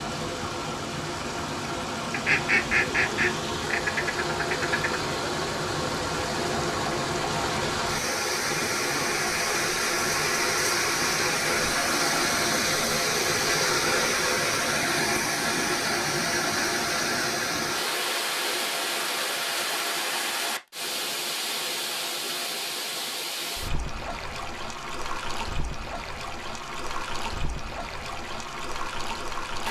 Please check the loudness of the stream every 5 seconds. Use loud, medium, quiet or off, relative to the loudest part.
medium, loud, loud, loud, medium, medium.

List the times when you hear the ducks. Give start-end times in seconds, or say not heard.
2.1-5.0.